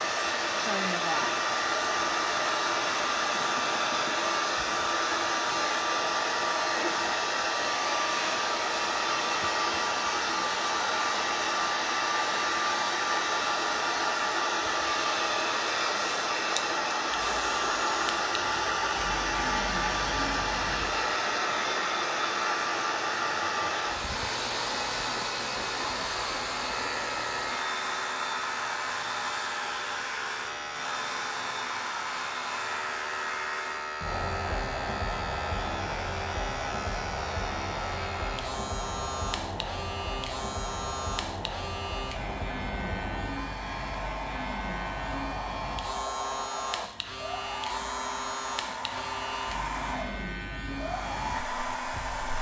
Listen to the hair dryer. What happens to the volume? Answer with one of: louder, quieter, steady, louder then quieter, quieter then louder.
quieter.